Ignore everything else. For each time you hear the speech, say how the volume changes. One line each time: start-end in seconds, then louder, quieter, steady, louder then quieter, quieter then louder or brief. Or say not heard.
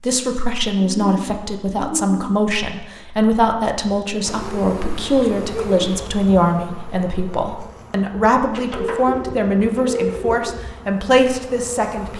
0.0-12.1 steady.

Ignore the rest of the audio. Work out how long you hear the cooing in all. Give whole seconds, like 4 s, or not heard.
5 s.